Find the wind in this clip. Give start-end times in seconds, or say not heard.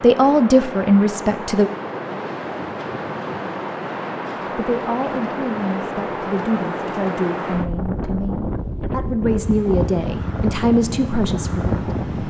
0.0-12.2.